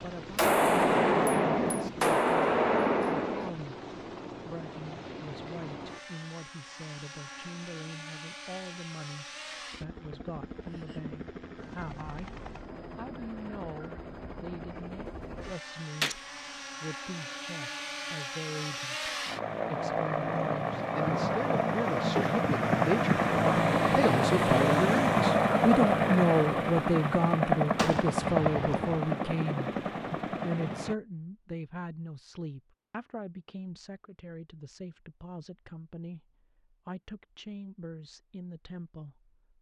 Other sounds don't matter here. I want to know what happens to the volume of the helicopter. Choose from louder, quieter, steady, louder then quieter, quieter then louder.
louder.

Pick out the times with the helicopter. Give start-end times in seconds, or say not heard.
0.0-30.9.